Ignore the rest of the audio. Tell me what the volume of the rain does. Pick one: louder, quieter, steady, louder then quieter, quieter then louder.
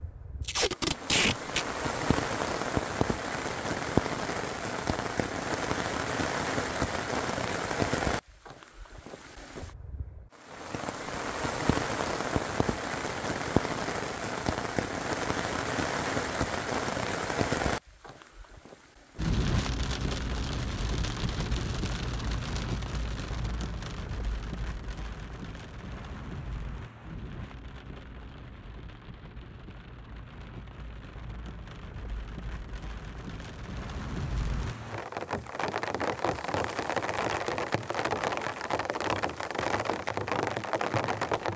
quieter then louder.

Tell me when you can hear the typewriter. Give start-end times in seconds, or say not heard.
not heard.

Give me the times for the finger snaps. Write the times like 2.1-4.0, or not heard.
not heard.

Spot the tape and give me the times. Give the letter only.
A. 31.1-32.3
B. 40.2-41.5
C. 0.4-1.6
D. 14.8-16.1
C.